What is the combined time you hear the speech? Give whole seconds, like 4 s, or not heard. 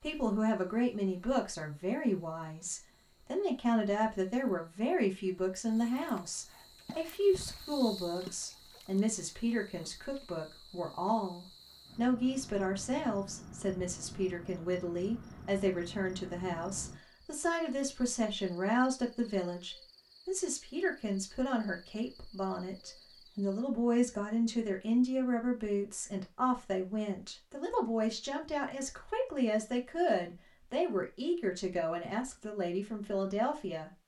34 s.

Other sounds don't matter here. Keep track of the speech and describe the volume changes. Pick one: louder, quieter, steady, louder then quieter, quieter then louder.
steady.